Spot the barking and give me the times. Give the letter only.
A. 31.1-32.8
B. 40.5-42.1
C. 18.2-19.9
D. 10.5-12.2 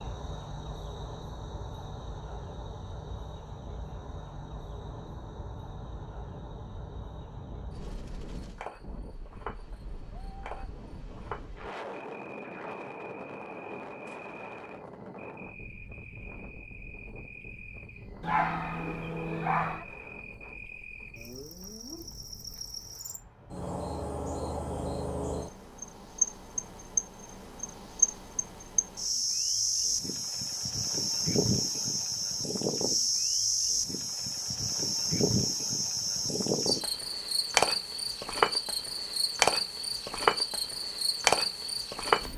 C.